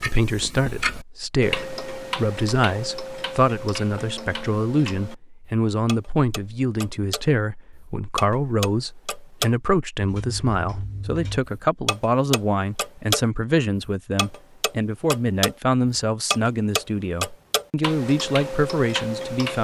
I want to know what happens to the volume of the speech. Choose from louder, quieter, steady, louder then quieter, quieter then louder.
steady.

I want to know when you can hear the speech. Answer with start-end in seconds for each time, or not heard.
0.0-19.5.